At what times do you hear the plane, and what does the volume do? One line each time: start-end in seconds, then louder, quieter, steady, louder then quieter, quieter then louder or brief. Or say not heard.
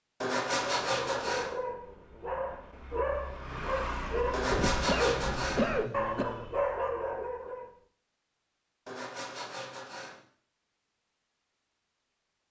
not heard.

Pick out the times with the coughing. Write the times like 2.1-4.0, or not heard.
4.5-6.2.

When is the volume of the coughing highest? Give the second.
6 s.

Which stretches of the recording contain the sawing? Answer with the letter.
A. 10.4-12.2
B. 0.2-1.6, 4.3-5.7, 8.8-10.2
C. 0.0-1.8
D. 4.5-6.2
B.